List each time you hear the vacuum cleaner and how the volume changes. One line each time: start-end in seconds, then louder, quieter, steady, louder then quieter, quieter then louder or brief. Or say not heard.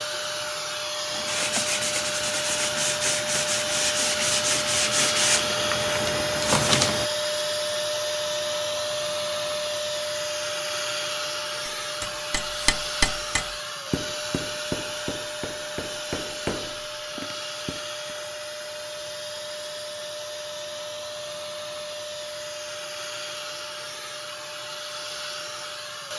0.0-26.1 quieter.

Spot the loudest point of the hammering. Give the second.
13 s.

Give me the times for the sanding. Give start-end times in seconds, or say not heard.
1.1-7.1.